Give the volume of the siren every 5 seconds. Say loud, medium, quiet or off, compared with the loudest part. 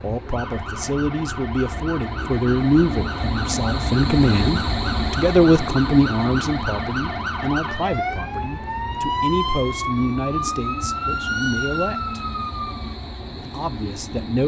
medium, loud, loud.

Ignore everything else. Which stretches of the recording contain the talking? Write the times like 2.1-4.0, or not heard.
0.0-12.2, 13.5-14.4.